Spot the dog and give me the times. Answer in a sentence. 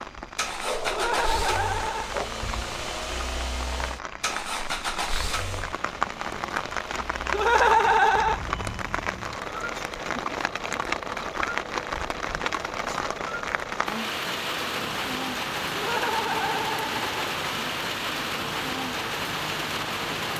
You can hear the dog from 0.6 to 2.3 s.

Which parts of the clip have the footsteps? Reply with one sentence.
You can't hear the footsteps here.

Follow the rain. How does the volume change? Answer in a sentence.
The loudness of the rain goes up.